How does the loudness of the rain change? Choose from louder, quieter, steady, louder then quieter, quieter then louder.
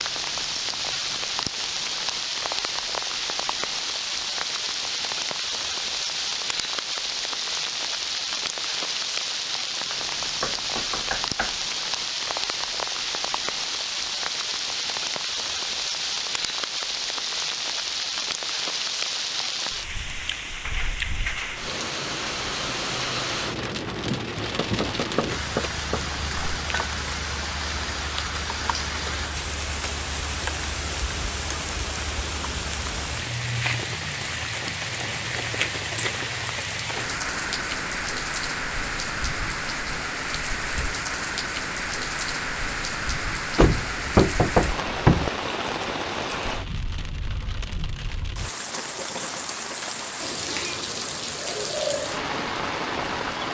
steady.